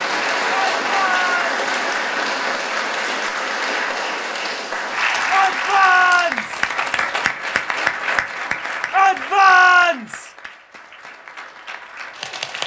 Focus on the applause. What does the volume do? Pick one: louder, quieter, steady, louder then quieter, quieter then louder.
quieter.